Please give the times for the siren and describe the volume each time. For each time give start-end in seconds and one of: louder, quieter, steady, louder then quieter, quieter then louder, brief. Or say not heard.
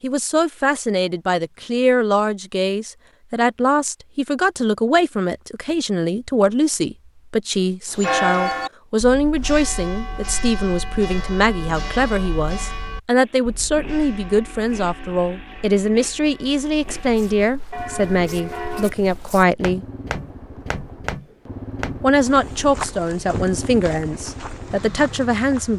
not heard.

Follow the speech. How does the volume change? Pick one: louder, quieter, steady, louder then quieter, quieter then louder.
steady.